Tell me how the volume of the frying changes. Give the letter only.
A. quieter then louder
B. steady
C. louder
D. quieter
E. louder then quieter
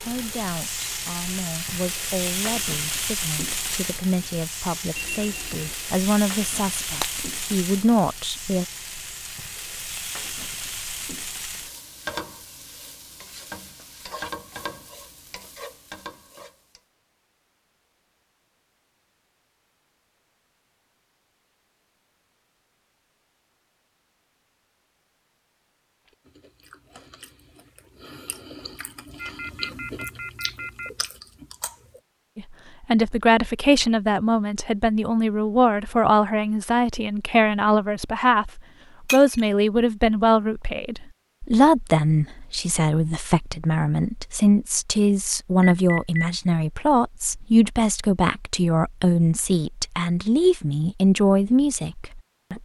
D.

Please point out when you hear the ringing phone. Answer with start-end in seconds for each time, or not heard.
4.9-5.8, 29.1-30.9, 45.6-46.3.